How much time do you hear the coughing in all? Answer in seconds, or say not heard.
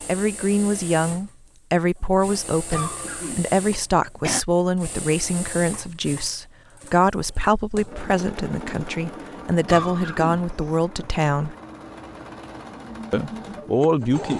3 s.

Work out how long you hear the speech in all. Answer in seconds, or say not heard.
13 s.